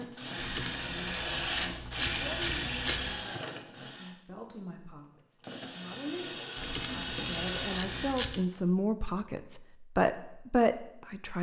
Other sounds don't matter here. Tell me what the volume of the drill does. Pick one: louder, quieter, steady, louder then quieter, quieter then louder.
quieter then louder.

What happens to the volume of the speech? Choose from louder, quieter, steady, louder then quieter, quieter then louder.
louder.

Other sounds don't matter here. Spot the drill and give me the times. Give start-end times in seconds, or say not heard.
0.0-8.2.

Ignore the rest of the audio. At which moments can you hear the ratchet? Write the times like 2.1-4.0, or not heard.
0.3-3.2, 6.5-8.4.